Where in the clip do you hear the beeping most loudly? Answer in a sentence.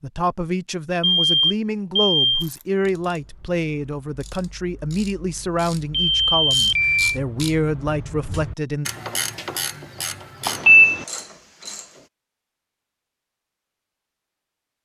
The loudest moment of the beeping is at 11 seconds.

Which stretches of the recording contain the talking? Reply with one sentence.
You can hear the talking from 0.0 to 8.9 s.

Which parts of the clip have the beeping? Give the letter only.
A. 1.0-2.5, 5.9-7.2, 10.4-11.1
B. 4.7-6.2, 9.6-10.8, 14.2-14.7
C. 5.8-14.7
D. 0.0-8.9
A.